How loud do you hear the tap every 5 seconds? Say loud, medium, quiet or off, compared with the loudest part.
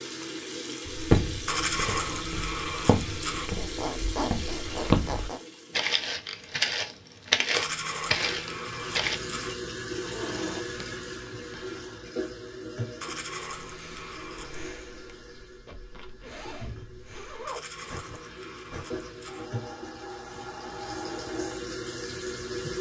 loud, loud, loud, medium, loud.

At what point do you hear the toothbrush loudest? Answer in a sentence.
The volume of the toothbrush peaks at 2 seconds.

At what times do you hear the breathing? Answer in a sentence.
You can hear the breathing from 13.6 to 21.6 s.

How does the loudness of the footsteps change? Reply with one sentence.
The loudness of the footsteps goes up.